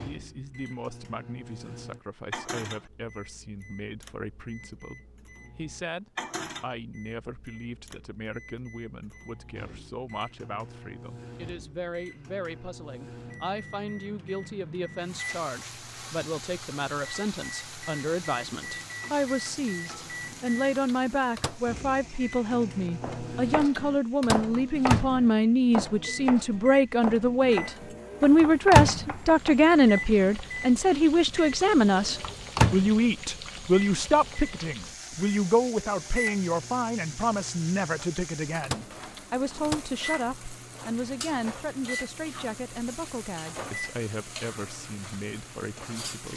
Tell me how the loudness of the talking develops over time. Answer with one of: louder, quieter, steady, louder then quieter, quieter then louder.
louder then quieter.